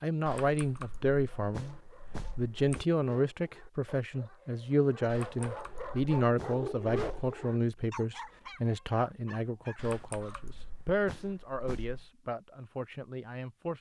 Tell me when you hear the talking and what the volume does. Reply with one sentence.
The talking can be heard briefly from 0.0 to 1.8 s; and from 2.4 to 13.7 s, getting quieter.